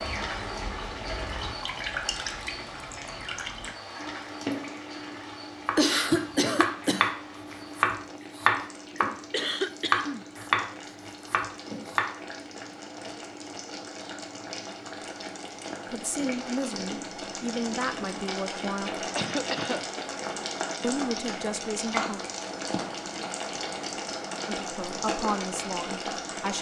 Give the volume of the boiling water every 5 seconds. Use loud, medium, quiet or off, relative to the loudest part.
medium, quiet, medium, loud, loud, loud.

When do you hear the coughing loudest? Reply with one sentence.
The loudest moment of the coughing is at 6 seconds.